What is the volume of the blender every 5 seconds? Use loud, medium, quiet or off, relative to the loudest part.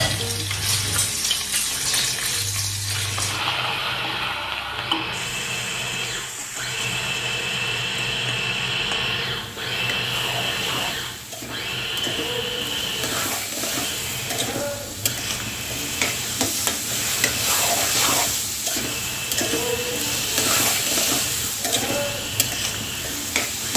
medium, loud, loud, medium, medium.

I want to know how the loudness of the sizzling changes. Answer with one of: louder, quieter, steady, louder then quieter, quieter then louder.
quieter then louder.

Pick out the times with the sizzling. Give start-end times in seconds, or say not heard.
0.0-23.7.